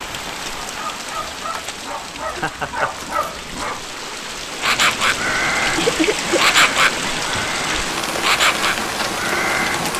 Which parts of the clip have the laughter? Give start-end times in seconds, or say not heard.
2.4-3.0, 5.8-6.5.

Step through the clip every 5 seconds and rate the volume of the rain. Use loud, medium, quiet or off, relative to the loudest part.
medium, loud.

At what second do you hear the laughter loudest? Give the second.
6 s.